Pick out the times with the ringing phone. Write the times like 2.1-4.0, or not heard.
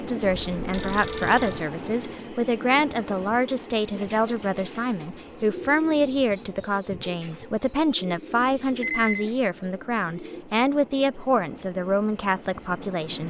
0.2-1.6, 8.4-9.2.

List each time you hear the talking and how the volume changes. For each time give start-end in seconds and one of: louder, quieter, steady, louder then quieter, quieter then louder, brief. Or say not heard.
0.0-13.2 steady.